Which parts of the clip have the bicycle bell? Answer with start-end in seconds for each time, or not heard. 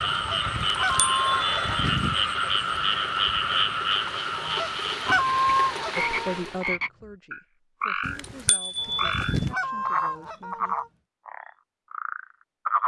0.8-2.1, 8.1-9.6.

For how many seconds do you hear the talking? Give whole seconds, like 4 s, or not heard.
5 s.